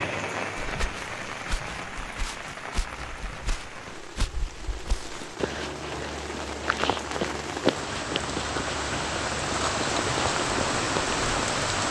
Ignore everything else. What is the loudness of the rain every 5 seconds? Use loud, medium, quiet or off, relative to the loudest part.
medium, medium, loud.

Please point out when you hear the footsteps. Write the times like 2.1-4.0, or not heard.
0.6-11.2.